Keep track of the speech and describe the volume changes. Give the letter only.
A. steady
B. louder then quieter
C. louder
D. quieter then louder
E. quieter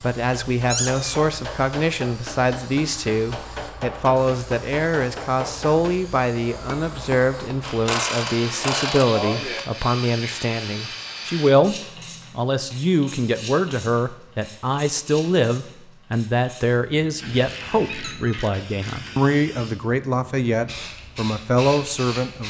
A.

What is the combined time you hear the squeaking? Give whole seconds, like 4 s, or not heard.
2 s.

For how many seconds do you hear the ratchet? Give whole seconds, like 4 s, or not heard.
4 s.